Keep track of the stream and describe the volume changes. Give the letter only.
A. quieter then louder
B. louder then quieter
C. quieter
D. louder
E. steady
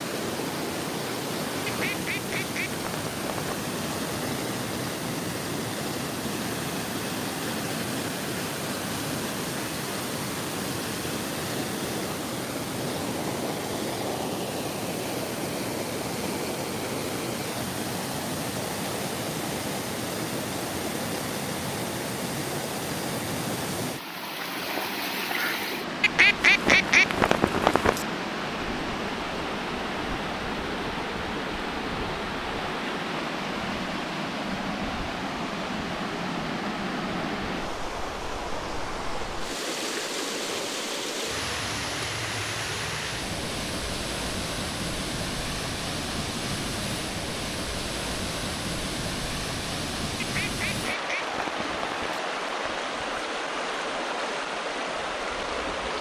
E.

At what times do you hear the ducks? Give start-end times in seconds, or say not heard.
1.6-3.6, 26.0-28.1, 50.2-52.2.